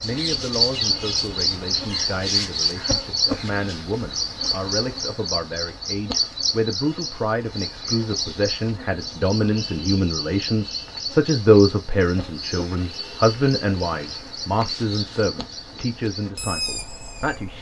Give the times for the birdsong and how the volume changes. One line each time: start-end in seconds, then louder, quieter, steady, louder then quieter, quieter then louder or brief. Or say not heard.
0.0-17.5 quieter.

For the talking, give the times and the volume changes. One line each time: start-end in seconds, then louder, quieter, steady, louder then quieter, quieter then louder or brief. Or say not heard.
0.0-17.5 louder then quieter.